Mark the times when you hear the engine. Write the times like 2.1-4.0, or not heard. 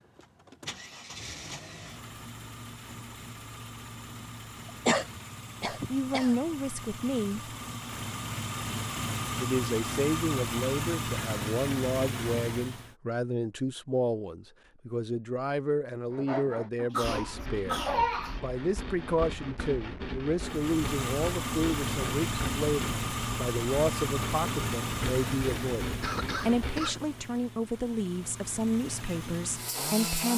0.0-12.9, 20.4-30.3.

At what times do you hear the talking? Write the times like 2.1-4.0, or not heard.
5.7-7.5, 9.3-30.3.